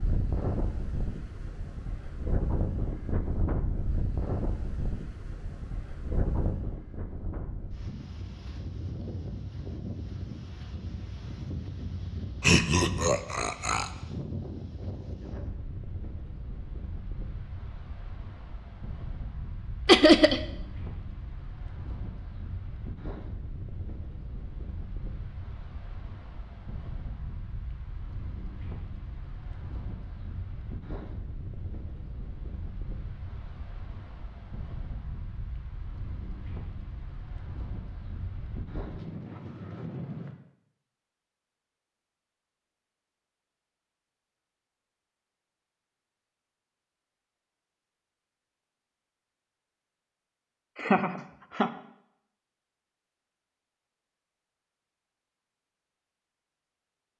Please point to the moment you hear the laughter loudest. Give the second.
20 s.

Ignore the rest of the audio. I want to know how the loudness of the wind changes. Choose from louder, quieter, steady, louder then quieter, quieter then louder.
quieter.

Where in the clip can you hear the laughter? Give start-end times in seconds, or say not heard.
12.4-13.9, 19.9-20.4, 50.8-51.7.